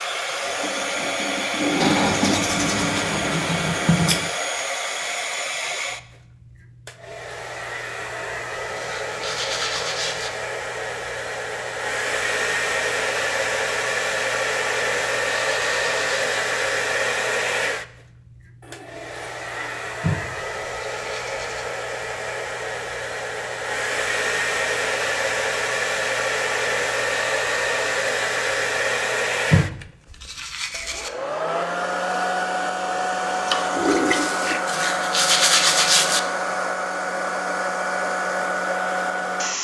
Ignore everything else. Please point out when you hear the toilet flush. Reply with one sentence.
You can hear the toilet flush from 0.5 to 2.4 s, from 18.6 to 19.9 s and from 33.5 to 34.6 s.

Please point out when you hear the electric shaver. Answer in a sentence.
You can't hear the electric shaver here.